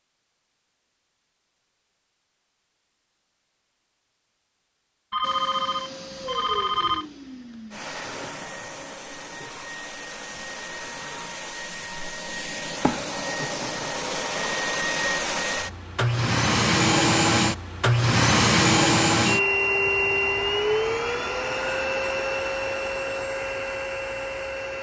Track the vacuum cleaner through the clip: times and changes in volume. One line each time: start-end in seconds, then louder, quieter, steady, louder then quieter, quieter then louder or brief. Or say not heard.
5.2-24.7 louder then quieter.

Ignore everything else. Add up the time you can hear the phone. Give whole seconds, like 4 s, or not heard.
2 s.